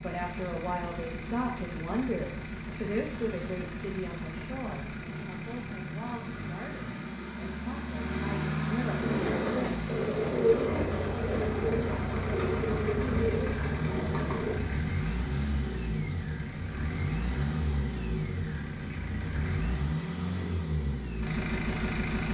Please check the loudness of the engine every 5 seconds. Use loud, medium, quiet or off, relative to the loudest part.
medium, loud, loud, loud, loud.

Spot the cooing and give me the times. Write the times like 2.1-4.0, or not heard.
8.9-14.6.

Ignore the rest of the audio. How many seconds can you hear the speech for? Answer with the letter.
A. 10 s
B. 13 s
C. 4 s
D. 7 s
A.